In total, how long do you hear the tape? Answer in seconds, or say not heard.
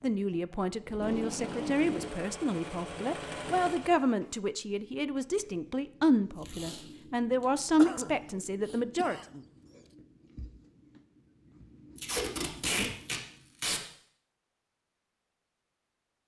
4 s.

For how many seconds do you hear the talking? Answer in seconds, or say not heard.
9 s.